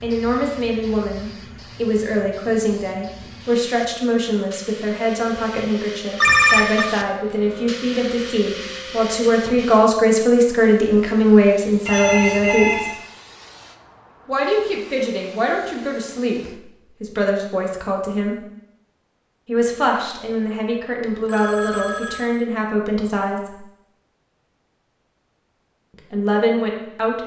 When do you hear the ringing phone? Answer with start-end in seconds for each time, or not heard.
6.2-6.8, 11.8-12.9, 21.0-22.2.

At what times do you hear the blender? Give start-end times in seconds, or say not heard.
not heard.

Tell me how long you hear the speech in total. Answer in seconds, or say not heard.
22 s.